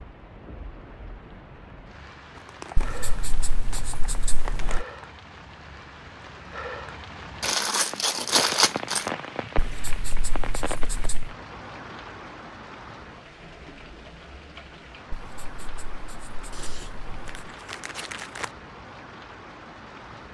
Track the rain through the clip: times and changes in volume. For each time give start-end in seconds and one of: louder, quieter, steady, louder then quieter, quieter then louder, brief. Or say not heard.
0.0-20.3 louder then quieter.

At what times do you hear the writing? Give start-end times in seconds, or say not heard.
2.8-4.8, 9.6-11.3, 15.1-17.4.